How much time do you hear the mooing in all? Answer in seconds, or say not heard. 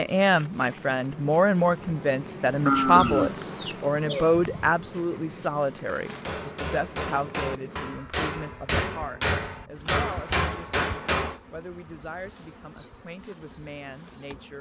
2 s.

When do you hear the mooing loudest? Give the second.
3 s.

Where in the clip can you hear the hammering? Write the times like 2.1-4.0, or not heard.
6.0-11.4.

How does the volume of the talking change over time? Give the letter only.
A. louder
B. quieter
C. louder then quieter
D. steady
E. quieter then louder
B.